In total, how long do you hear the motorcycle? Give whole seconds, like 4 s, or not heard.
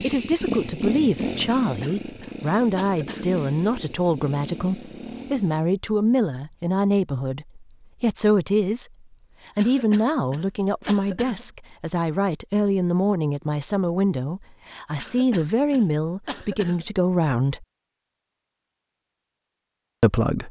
6 s.